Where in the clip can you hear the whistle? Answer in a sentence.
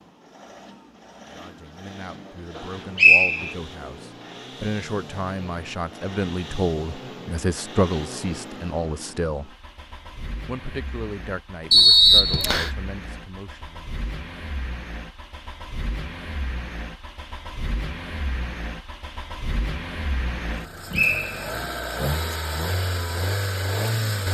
You can hear the whistle from 2.5 to 3.5 s, from 11.7 to 12.7 s and from 20.9 to 21.4 s.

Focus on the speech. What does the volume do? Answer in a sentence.
The loudness of the speech goes up, then down.